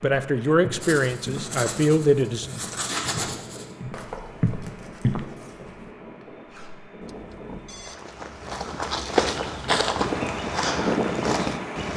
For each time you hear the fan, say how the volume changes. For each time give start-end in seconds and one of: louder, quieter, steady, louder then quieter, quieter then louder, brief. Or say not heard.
0.1-11.9 louder.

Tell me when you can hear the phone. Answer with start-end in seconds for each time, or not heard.
7.0-8.0.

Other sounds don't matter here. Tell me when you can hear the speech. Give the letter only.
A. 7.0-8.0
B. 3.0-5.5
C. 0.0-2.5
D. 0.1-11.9
C.